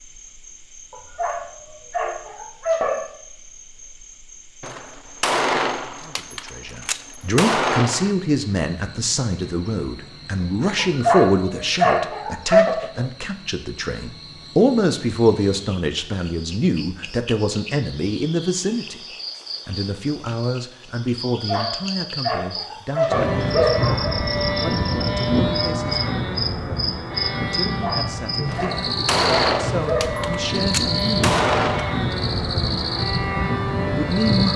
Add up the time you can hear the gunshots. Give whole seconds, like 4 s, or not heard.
7 s.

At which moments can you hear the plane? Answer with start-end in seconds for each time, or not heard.
23.1-34.5.